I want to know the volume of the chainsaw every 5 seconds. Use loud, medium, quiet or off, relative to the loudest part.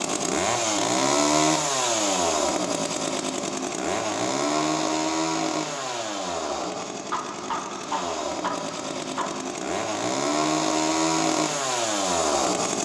loud, medium, loud.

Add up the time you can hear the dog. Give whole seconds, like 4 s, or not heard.
2 s.